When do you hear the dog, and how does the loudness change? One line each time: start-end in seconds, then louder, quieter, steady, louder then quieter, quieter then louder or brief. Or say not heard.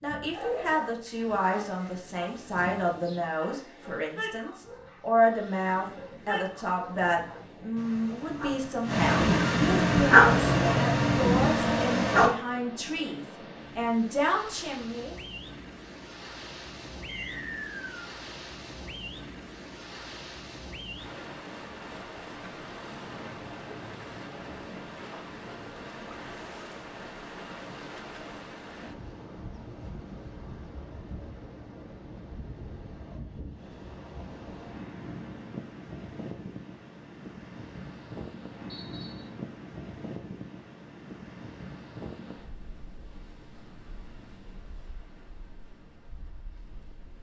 0.3-12.3 louder.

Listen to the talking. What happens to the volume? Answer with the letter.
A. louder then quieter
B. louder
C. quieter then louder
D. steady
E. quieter
D.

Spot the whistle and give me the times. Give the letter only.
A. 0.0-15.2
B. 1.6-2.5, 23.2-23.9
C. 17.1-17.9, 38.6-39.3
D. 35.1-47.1
C.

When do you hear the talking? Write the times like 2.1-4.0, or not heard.
0.0-15.2.